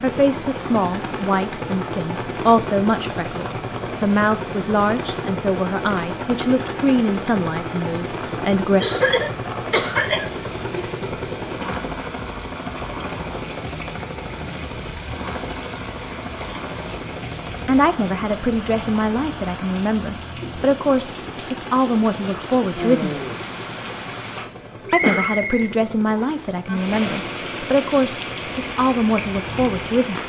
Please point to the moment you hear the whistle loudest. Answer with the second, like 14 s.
25 s.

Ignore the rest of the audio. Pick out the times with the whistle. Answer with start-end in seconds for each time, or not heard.
24.9-26.5.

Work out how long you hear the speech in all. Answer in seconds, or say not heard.
20 s.